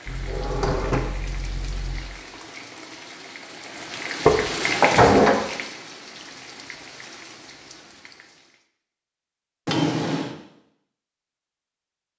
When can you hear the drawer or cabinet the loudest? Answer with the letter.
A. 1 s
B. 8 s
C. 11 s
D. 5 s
D.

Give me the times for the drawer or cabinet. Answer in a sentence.
You can hear the drawer or cabinet from 0.1 to 2.0 s, from 4.2 to 5.4 s and from 9.7 to 10.3 s.